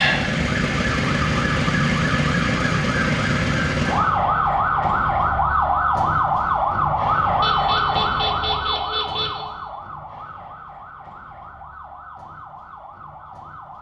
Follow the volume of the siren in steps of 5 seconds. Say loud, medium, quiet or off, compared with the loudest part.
loud, loud, quiet.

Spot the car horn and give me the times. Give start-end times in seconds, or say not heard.
7.4-9.3.